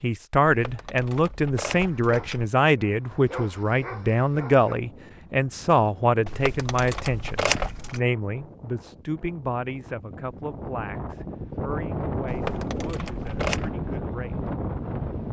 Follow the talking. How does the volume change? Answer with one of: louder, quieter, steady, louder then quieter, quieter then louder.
quieter.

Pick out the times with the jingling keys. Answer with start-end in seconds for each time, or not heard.
0.5-2.5, 6.2-8.0, 12.2-13.7.